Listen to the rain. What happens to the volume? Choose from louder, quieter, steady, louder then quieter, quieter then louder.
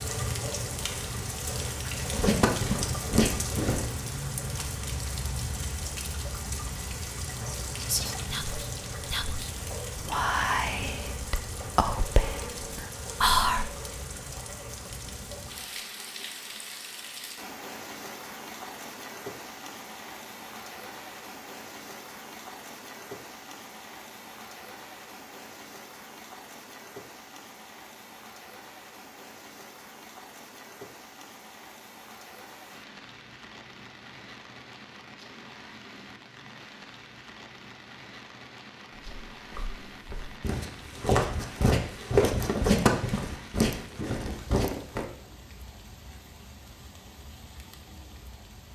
quieter.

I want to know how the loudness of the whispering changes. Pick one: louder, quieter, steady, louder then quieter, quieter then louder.
louder.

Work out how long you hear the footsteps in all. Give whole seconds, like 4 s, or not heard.
8 s.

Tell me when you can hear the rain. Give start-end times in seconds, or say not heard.
0.0-48.7.